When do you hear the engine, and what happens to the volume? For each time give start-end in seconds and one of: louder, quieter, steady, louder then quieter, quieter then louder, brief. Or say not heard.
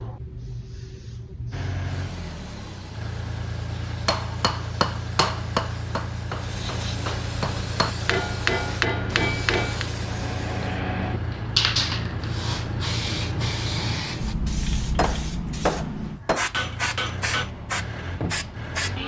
1.5-14.1 steady
16.5-19.0 brief.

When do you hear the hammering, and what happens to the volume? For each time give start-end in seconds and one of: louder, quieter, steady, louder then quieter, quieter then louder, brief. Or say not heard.
4.0-9.8 quieter then louder
14.9-17.5 brief.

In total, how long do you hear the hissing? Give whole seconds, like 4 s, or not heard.
19 s.